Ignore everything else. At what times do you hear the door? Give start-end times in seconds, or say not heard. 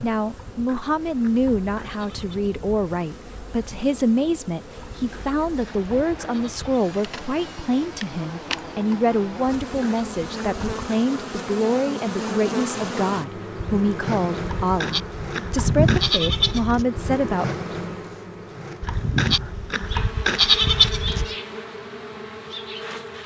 not heard.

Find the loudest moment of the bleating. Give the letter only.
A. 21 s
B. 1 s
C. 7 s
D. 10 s
A.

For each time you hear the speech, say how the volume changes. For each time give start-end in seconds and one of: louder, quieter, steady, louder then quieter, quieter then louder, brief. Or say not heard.
0.0-17.5 steady.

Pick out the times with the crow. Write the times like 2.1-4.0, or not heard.
not heard.